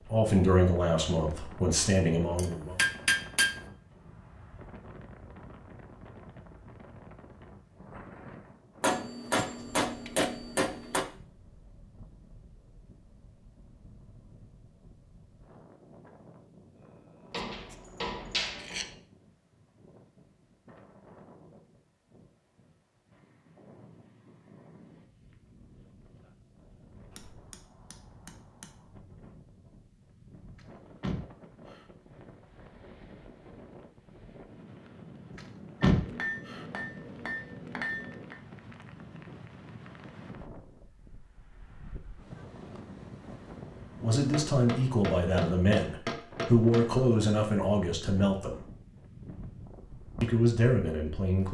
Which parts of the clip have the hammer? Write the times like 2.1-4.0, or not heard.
2.4-3.6, 8.8-11.1, 17.3-18.9, 27.1-28.7, 35.9-38.4, 44.3-46.9.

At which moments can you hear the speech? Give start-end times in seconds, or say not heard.
0.1-2.8, 44.0-48.6, 50.2-51.5.